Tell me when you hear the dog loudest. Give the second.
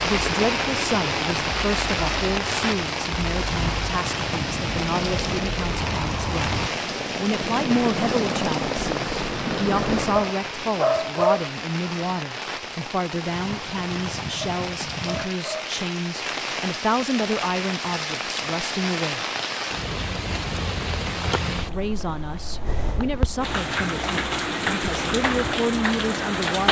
11 s.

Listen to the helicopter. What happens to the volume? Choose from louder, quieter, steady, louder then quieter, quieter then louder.
louder.